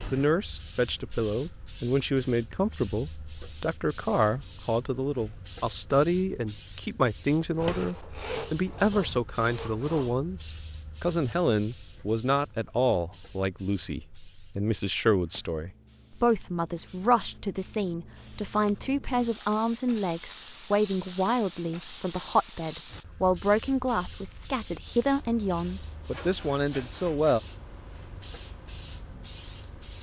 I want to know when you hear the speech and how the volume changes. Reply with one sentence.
You can hear the speech from 0.1 to 27.4 s, at a steady volume.